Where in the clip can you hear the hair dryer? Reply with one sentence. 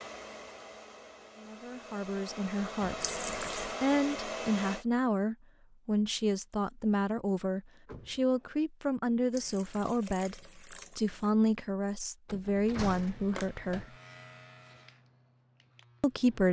You can hear the hair dryer from 0.0 to 4.8 s.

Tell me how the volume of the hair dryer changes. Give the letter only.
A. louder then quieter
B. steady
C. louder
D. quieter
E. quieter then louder
C.